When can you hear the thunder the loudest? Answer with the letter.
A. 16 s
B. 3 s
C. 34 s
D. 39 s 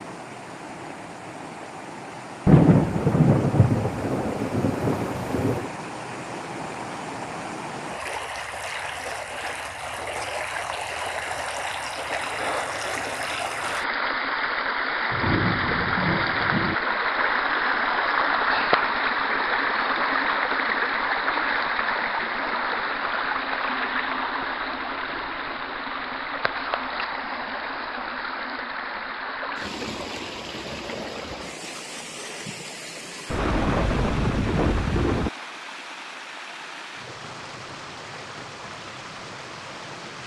B.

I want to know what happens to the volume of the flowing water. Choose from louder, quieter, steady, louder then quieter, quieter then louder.
louder then quieter.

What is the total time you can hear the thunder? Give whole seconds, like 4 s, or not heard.
7 s.